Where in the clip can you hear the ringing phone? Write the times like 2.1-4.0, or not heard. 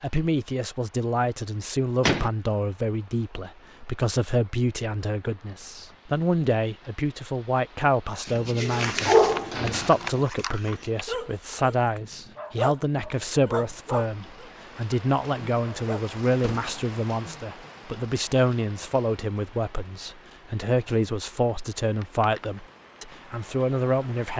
not heard.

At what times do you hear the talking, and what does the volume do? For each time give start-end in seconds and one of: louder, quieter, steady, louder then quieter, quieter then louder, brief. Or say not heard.
0.0-24.3 steady.